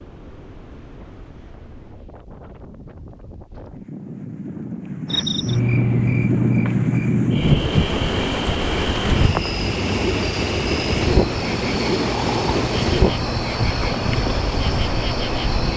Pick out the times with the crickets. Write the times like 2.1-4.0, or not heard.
5.0-15.7.